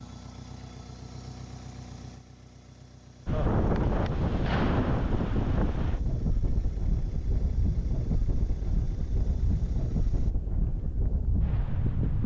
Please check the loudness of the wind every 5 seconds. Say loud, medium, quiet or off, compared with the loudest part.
loud, medium, medium.